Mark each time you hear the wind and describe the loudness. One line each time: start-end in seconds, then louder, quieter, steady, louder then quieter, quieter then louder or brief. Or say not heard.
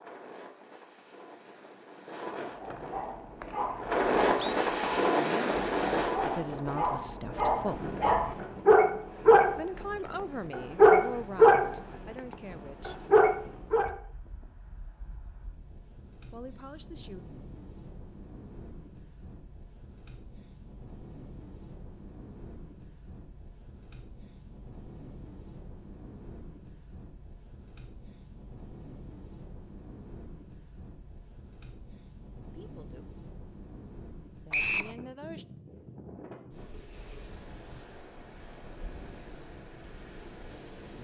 0.0-41.0 quieter.